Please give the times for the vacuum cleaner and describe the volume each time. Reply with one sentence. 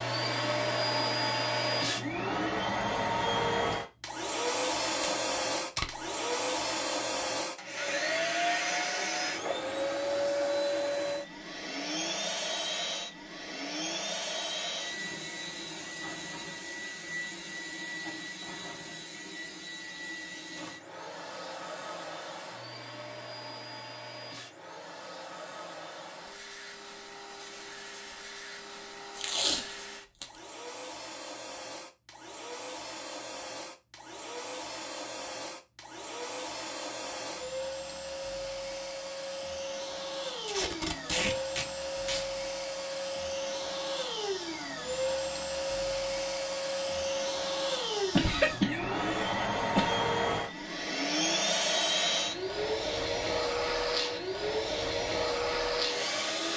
The vacuum cleaner can be heard from 0.0 to 56.5 s, getting quieter then louder.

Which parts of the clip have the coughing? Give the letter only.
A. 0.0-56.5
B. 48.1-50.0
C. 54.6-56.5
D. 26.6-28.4
B.